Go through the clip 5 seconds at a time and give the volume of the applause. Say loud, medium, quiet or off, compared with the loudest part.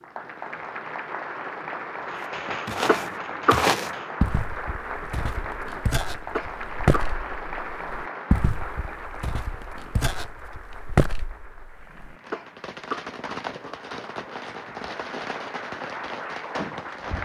loud, loud, medium, loud.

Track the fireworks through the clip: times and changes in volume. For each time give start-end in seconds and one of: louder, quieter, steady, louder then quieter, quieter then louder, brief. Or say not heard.
2.0-4.2 brief
12.2-17.2 steady.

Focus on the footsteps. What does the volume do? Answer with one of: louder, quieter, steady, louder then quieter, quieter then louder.
quieter then louder.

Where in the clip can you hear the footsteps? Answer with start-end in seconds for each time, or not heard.
2.2-12.2.